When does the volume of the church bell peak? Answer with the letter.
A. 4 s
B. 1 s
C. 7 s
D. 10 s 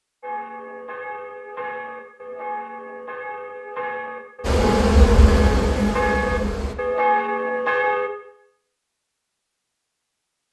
C.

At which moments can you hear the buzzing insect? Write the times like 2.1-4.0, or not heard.
4.4-6.8.